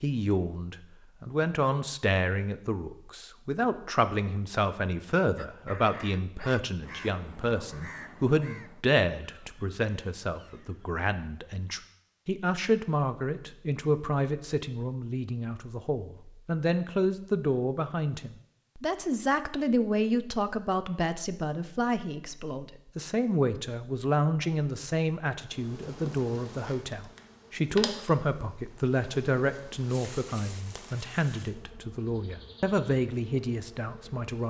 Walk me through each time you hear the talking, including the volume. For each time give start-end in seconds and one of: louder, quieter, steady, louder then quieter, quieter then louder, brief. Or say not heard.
0.0-34.4 steady.